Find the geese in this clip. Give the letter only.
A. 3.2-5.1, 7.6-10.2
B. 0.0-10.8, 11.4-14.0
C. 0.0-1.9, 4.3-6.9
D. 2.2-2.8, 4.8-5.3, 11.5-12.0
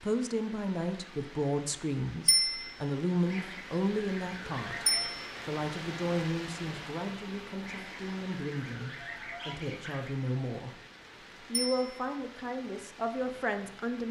A.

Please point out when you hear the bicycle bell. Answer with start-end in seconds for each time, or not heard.
2.2-2.8, 4.8-5.3, 11.5-12.0.